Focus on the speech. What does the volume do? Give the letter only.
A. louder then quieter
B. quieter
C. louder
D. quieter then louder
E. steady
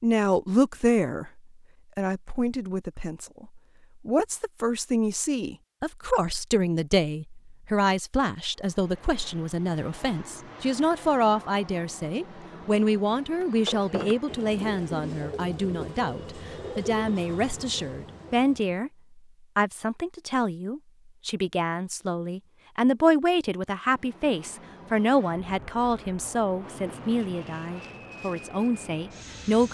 E.